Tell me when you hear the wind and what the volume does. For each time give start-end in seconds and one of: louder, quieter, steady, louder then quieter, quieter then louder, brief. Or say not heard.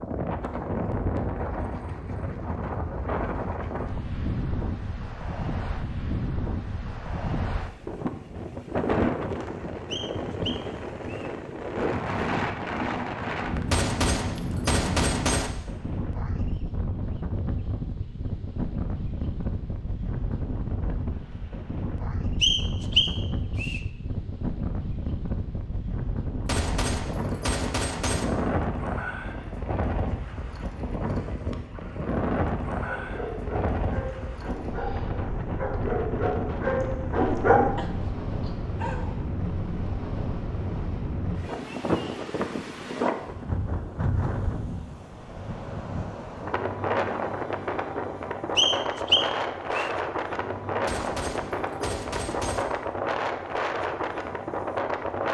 0.0-55.2 steady.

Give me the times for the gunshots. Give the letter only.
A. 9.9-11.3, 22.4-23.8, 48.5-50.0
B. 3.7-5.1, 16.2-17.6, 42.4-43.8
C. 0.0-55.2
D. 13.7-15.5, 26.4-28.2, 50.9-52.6
D.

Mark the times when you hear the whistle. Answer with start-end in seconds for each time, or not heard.
9.9-11.3, 22.4-23.8, 48.5-50.0.